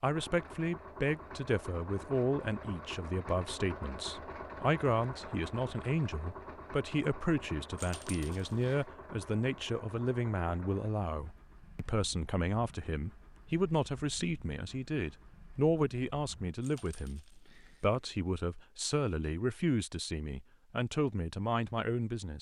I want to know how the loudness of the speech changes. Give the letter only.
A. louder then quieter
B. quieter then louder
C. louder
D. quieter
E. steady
E.